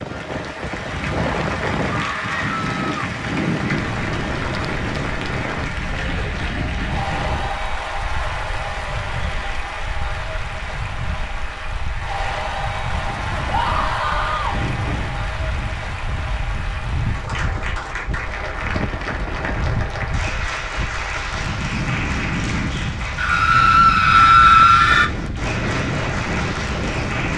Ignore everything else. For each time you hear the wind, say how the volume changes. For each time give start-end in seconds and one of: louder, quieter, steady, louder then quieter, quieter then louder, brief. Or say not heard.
0.0-27.3 quieter then louder.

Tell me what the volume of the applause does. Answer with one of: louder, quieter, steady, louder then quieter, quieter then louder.
steady.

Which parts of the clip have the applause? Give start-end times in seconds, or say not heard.
0.0-27.3.